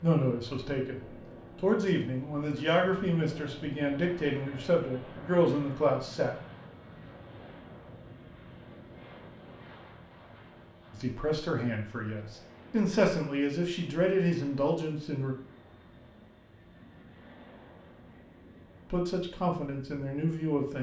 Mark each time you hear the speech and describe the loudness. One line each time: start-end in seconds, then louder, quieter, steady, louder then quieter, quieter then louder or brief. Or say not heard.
0.0-6.4 louder
10.9-15.3 quieter then louder
18.9-20.7 brief.